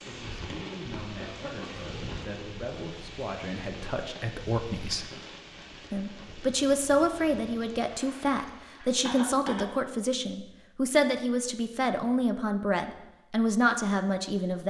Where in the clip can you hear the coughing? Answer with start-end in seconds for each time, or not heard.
1.1-1.9, 8.4-9.7.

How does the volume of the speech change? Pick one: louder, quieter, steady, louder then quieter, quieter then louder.
louder.